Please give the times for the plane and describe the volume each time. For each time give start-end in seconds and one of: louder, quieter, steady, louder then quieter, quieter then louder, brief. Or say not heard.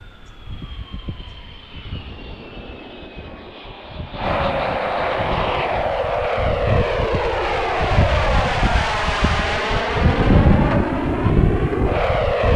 0.0-12.5 louder.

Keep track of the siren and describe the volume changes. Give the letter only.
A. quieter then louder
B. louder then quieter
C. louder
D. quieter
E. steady
C.